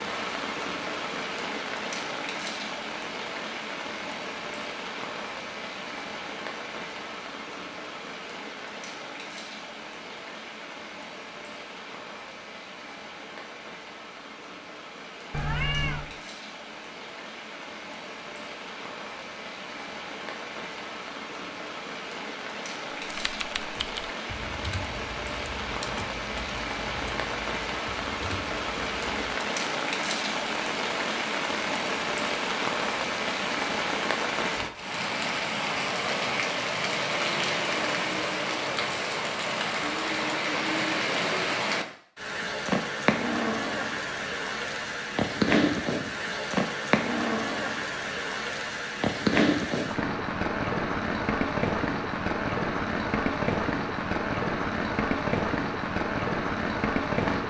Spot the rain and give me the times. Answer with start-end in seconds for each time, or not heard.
0.0-57.4.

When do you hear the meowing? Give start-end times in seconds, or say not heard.
15.3-16.1.